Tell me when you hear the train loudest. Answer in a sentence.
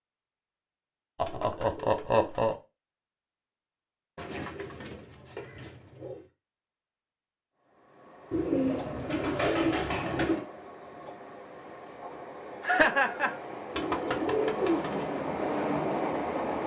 The loudest moment of the train is at 16 seconds.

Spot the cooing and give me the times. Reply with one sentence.
You can hear the cooing from 1.2 to 2.5 s, from 4.2 to 6.2 s, from 8.3 to 10.4 s and from 13.8 to 15.1 s.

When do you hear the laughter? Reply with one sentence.
The laughter can be heard from 1.1 to 2.5 s and from 12.6 to 13.3 s.